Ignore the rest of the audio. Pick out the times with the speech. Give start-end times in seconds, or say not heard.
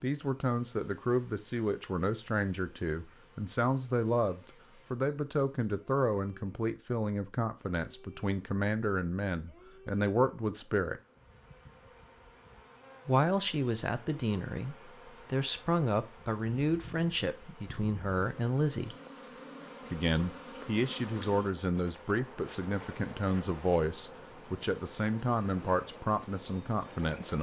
0.0-11.0, 13.1-18.9, 19.9-27.3.